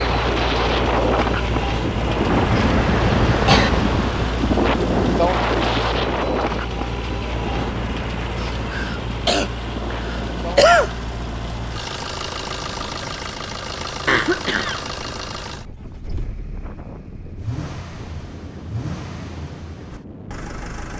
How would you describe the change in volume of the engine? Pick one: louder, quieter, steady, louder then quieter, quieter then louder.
quieter.